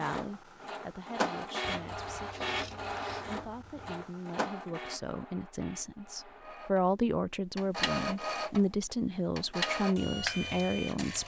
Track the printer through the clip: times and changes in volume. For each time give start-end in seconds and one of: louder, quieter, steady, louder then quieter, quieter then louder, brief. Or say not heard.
0.0-11.2 quieter then louder.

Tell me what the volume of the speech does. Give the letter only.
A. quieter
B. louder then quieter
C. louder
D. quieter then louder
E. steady
C.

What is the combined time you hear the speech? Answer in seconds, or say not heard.
11 s.